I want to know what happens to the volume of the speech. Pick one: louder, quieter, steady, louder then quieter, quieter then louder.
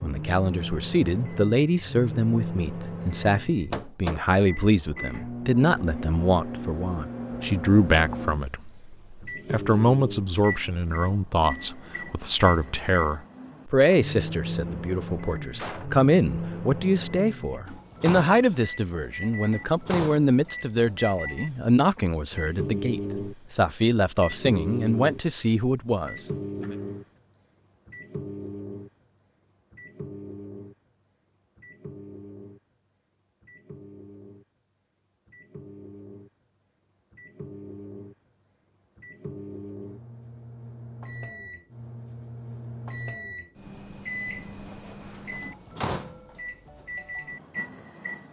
steady.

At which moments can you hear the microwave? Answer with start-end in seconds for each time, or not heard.
0.0-48.2.